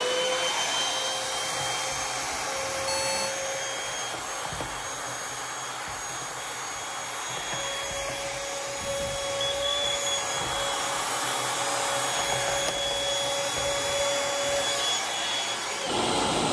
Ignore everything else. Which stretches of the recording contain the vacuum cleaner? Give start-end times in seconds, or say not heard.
0.0-16.4.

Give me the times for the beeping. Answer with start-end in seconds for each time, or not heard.
2.5-3.4, 8.8-10.3.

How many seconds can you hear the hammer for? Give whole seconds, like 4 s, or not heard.
not heard.